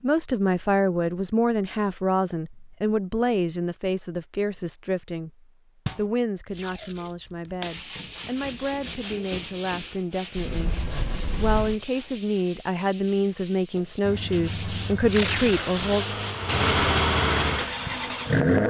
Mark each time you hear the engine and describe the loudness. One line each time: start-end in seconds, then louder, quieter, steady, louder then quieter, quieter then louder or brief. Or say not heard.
14.0-18.6 louder then quieter.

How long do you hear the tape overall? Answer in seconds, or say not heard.
2 s.